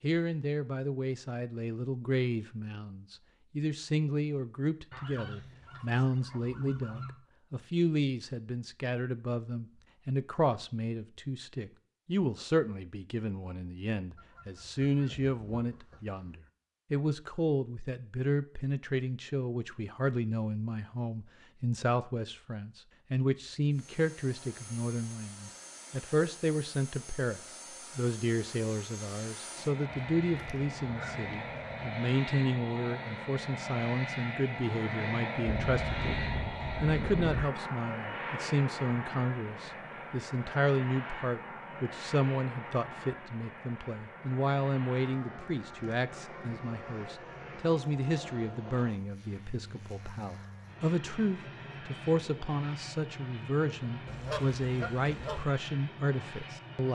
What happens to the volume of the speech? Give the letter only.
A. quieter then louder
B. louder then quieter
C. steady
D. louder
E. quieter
C.